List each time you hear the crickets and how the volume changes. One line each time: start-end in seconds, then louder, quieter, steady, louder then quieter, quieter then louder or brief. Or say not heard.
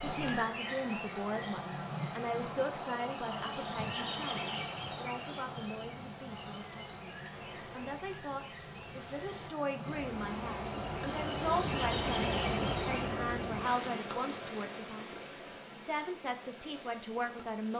0.0-13.1 quieter then louder.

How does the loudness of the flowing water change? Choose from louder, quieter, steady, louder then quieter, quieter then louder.
louder then quieter.